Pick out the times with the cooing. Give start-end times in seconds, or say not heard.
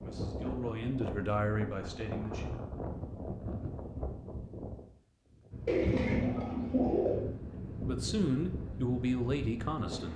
5.7-7.2.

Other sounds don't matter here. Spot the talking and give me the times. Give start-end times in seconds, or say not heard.
0.0-2.6, 7.8-10.1.